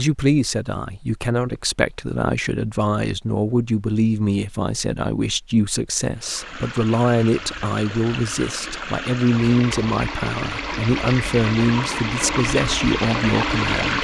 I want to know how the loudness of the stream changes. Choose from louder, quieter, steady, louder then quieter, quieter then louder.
louder.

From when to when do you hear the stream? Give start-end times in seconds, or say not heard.
6.2-14.0.